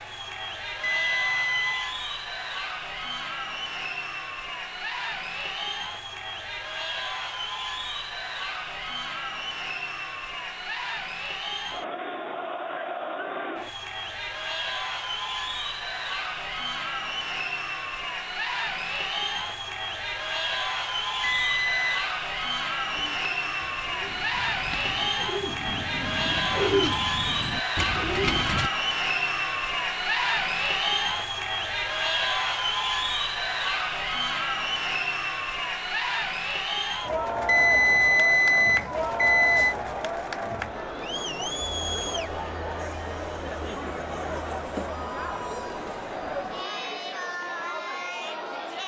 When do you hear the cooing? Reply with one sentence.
You can hear the cooing from 22.9 to 28.7 s.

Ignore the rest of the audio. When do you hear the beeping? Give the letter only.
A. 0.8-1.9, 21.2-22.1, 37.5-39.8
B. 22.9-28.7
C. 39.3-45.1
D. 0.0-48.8
A.